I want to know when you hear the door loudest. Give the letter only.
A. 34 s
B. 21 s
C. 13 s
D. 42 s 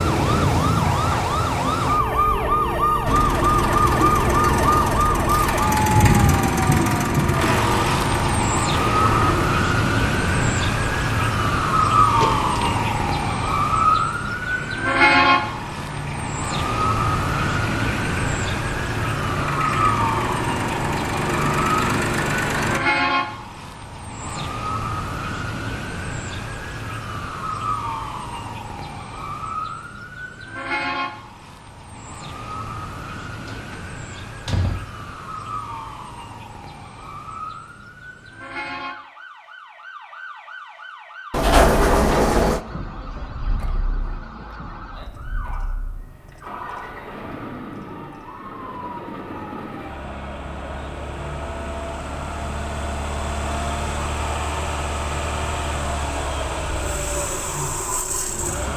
D.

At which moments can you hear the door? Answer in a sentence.
You can hear the door from 12.1 to 12.8 s, from 33.5 to 34.9 s and from 41.3 to 42.6 s.